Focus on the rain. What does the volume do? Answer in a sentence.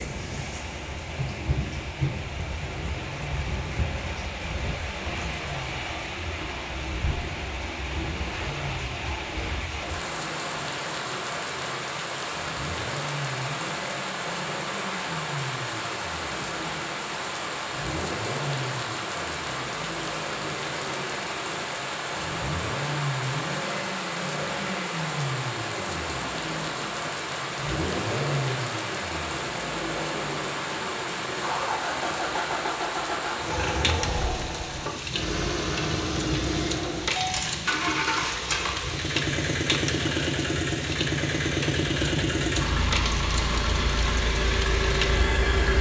The volume of the rain stays about the same.